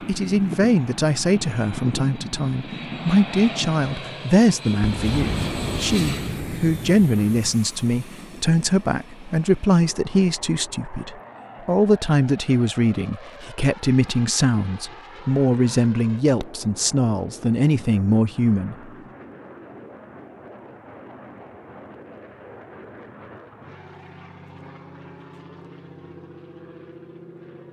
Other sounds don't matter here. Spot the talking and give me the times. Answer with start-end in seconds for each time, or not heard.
0.1-18.8.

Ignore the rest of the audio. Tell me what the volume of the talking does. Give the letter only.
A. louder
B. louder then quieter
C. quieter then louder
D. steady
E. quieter
D.